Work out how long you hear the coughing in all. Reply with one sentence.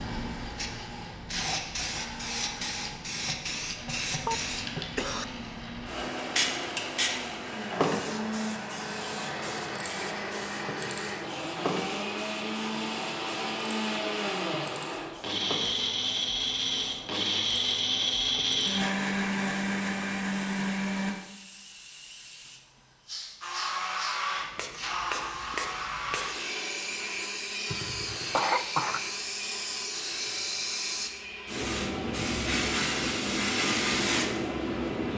You can hear the coughing for 2 seconds altogether.